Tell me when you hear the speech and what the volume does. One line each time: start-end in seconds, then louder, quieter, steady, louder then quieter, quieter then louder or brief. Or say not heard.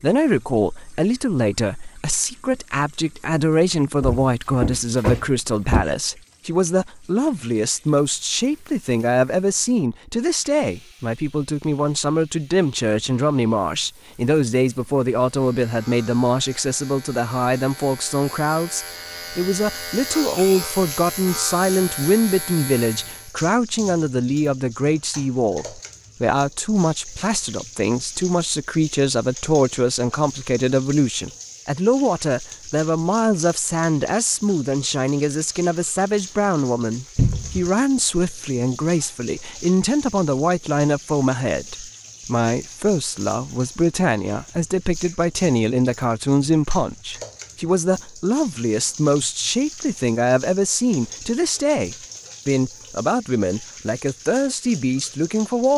0.0-55.7 steady.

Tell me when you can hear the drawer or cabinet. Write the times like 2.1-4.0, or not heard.
4.0-5.8, 37.1-37.7.